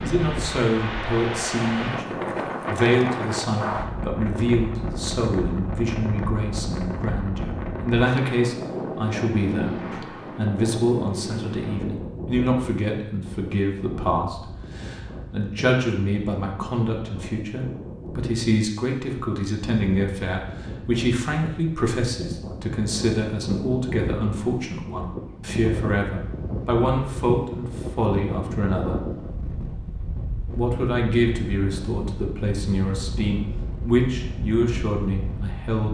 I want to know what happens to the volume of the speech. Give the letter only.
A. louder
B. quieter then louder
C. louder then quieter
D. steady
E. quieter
D.